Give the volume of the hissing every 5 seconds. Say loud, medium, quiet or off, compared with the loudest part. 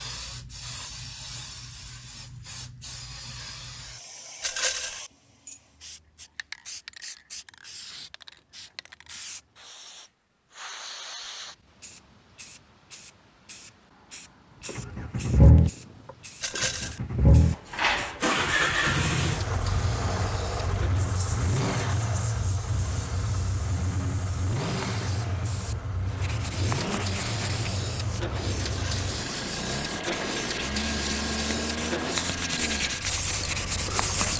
medium, medium, medium, medium, medium, loud, loud.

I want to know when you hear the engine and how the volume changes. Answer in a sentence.
The engine can be heard from 14.7 to 34.3 s, getting quieter.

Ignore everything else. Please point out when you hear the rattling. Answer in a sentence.
You can hear the rattling from 4.4 to 5.0 s, from 16.4 to 17.0 s and from 28.6 to 29.1 s.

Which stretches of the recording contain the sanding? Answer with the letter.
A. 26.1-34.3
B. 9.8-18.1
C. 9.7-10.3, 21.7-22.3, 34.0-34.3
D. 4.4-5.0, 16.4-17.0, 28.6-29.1
A.